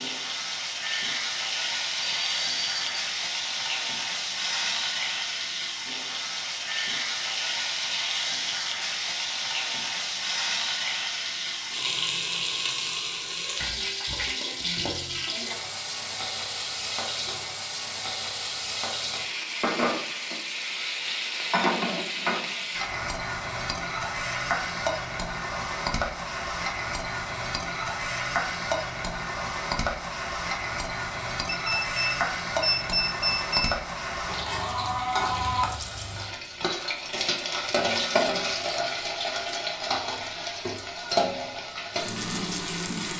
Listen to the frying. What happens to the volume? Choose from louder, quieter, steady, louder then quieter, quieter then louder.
steady.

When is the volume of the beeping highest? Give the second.
33 s.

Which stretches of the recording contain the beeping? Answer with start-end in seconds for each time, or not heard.
2.0-3.1, 31.4-33.8.